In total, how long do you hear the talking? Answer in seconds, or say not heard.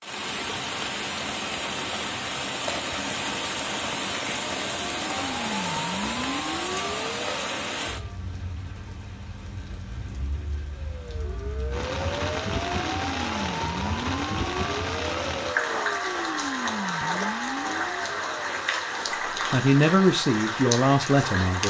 2 s.